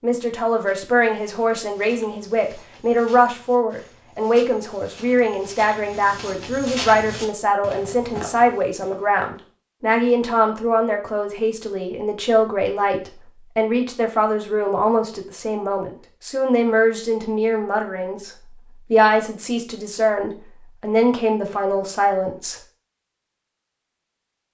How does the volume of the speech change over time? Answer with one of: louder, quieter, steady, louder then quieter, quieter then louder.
steady.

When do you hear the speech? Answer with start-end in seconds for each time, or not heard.
0.0-22.6.